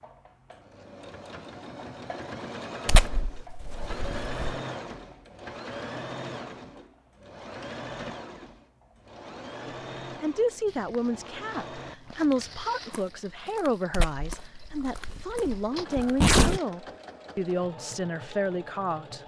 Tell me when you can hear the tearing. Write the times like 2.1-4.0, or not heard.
2.9-4.5, 13.9-16.6.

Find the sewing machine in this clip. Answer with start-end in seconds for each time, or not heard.
0.0-19.2.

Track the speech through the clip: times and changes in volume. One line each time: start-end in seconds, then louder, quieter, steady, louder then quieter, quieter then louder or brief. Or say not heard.
9.7-19.2 steady.